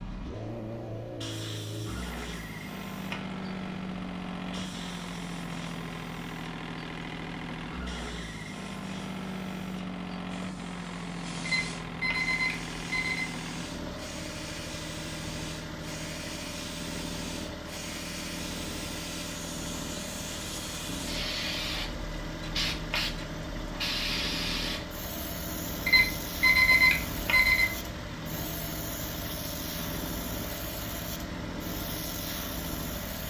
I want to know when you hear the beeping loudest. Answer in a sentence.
The volume of the beeping peaks at 27 seconds.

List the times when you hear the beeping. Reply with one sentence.
The beeping can be heard from 11.4 to 13.2 s and from 25.9 to 27.6 s.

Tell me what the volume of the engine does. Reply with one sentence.
The loudness of the engine stays about the same.